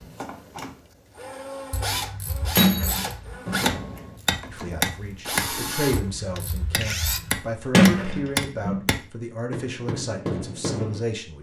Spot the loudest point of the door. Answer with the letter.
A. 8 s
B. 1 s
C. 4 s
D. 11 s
A.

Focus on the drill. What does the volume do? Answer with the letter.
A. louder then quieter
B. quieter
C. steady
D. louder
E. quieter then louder
D.